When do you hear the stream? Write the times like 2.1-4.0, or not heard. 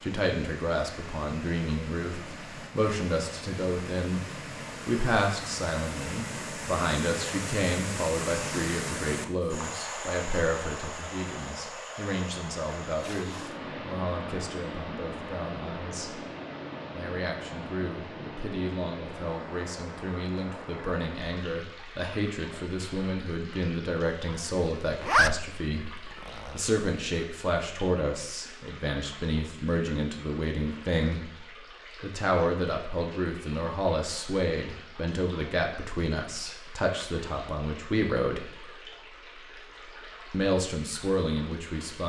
0.0-42.0.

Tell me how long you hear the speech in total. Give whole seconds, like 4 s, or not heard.
38 s.